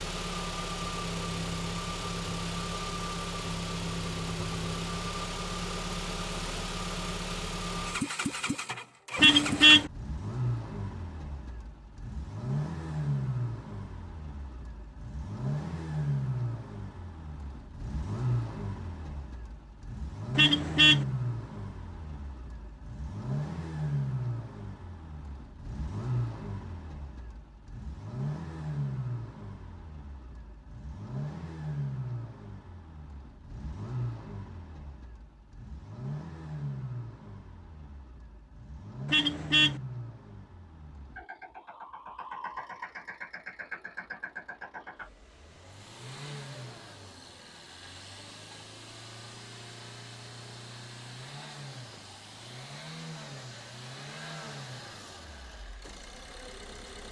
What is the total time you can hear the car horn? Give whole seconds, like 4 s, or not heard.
2 s.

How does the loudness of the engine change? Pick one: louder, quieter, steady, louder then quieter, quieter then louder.
quieter.